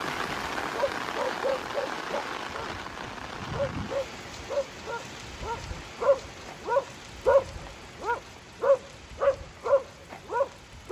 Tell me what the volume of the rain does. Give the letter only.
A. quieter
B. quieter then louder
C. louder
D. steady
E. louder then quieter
A.